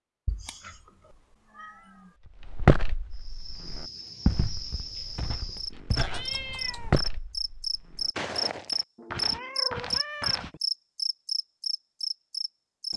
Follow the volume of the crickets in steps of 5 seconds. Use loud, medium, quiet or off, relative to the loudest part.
medium, loud, loud.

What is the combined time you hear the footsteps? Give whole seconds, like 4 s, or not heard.
8 s.